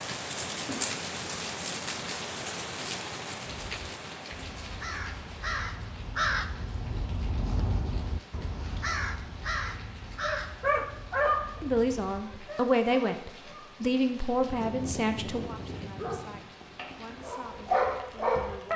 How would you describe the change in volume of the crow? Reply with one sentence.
The loudness of the crow goes up, then down.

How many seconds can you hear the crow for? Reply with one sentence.
You can hear the crow for 9 seconds altogether.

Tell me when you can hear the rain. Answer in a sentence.
The rain can be heard from 0.0 to 18.7 s.